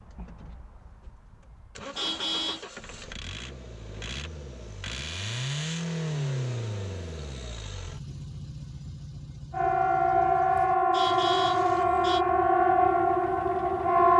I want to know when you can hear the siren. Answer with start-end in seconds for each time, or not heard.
9.5-14.1.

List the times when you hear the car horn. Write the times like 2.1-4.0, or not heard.
1.9-2.6, 10.9-12.2.